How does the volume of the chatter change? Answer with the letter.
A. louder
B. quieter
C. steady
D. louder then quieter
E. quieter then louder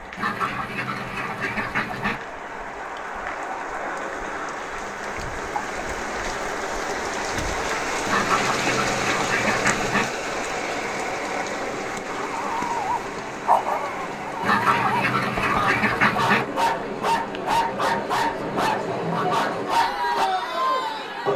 A.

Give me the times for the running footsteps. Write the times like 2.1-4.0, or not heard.
not heard.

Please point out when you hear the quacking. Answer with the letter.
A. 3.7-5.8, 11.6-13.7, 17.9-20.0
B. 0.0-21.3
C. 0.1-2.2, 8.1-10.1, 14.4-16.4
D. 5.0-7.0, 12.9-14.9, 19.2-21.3
C.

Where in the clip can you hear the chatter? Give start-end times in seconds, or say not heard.
10.8-21.3.